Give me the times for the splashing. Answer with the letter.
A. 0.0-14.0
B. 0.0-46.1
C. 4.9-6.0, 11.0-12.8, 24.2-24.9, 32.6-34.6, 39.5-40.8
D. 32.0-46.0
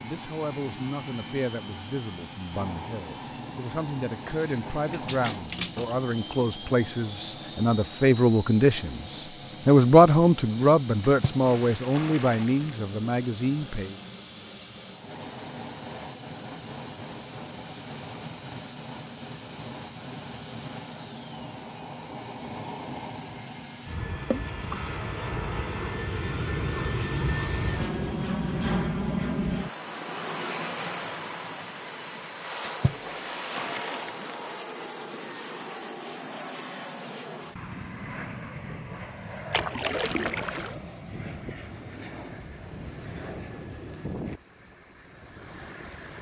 C.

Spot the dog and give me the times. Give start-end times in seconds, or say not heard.
not heard.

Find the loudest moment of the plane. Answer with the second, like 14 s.
29 s.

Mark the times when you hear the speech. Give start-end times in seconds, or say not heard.
0.0-14.0.